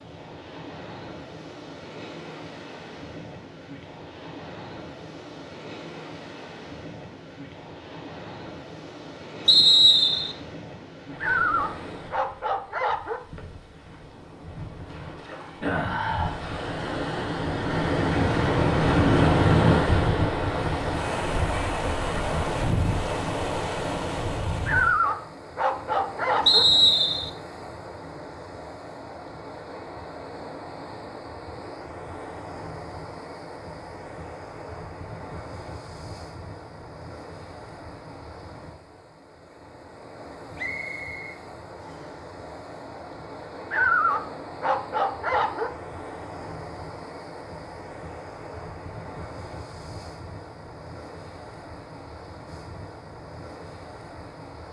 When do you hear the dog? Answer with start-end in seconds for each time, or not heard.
11.2-13.2, 24.6-26.6, 43.7-45.7.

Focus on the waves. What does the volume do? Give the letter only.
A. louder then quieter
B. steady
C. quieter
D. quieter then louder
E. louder
A.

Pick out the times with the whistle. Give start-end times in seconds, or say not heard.
9.4-10.3, 26.4-27.3, 40.5-42.1.